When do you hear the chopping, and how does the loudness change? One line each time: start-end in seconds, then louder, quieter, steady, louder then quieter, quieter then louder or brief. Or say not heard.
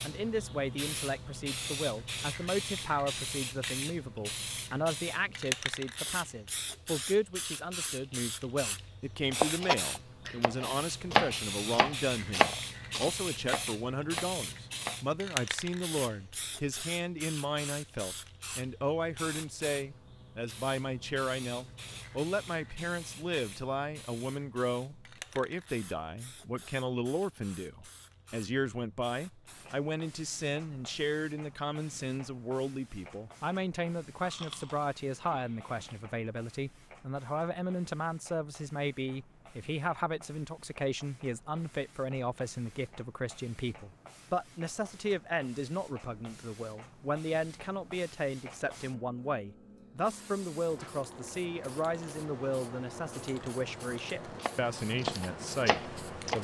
9.3-15.0 louder then quieter
54.4-56.3 brief.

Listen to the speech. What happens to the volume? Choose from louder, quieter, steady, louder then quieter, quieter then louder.
steady.